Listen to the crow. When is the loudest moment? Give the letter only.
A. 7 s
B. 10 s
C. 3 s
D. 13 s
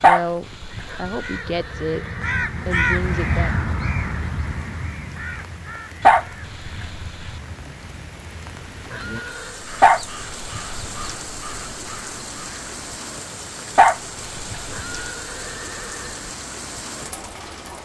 C.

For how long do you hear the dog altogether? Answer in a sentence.
The dog can be heard for 5 seconds in total.